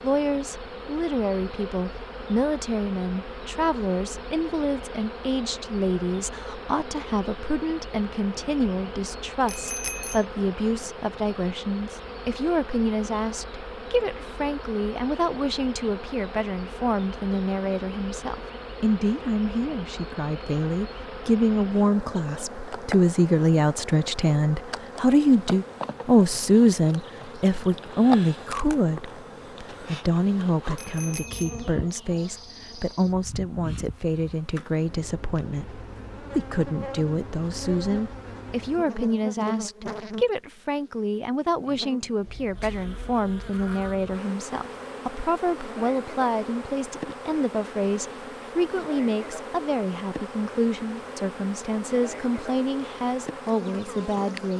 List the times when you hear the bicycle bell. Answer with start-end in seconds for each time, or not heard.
9.4-10.2, 30.8-31.7.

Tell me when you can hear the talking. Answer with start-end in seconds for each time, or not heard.
0.0-54.5.